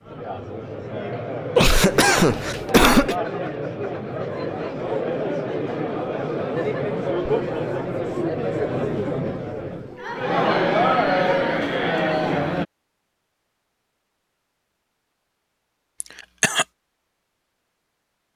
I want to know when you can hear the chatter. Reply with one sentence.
You can hear the chatter from 0.0 to 12.7 s.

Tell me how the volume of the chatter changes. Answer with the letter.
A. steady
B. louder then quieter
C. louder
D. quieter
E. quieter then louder
C.